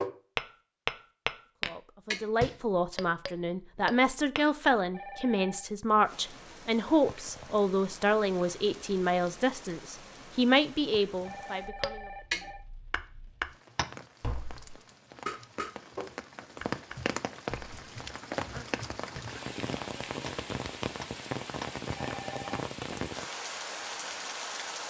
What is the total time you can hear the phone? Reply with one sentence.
The phone can be heard for 3 seconds in total.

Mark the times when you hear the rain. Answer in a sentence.
You can hear the rain from 6.0 to 24.8 s.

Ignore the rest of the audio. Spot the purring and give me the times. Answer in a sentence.
You can't hear the purring here.